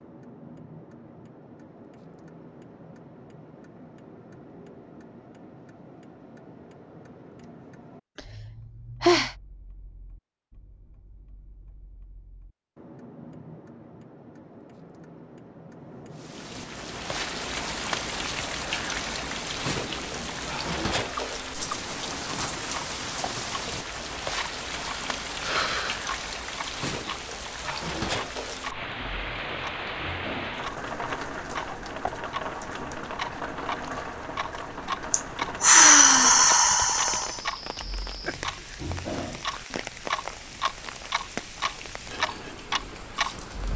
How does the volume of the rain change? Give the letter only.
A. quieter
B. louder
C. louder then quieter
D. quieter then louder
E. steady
A.